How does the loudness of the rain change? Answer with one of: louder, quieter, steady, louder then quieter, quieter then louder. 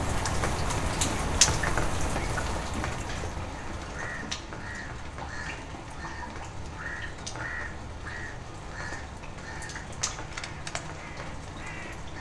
quieter.